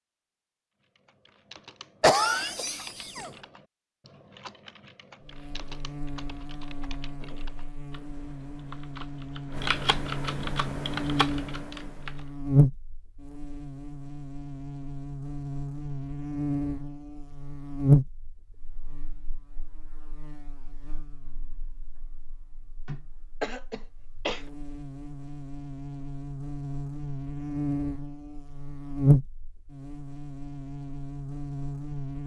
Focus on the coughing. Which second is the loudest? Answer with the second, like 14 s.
2 s.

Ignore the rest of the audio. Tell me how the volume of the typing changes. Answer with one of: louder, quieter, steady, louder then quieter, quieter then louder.
louder.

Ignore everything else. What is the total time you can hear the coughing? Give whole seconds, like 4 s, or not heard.
3 s.